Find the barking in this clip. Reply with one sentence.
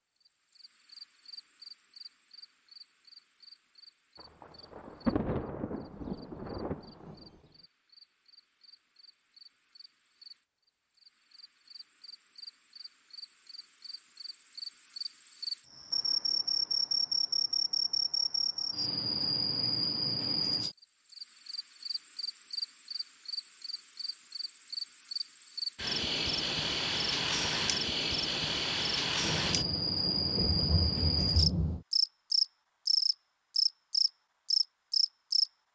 You can't hear the barking here.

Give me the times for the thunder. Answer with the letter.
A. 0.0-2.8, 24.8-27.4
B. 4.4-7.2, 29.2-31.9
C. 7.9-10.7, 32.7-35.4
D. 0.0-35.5
B.